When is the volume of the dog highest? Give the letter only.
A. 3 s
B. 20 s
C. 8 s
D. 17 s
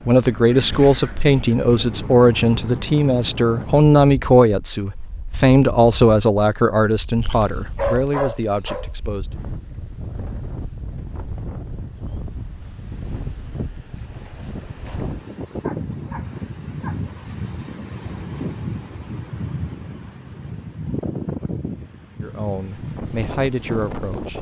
C.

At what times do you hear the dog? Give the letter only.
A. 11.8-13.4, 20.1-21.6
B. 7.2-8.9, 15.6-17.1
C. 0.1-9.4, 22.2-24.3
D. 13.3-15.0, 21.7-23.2
B.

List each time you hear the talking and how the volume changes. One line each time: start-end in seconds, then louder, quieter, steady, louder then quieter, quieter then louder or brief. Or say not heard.
0.1-9.4 quieter
22.2-24.3 brief.